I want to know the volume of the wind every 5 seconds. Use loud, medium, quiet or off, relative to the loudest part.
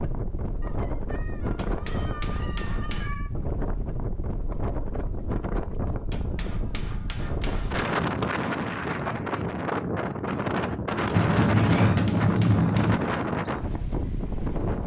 medium, loud, loud.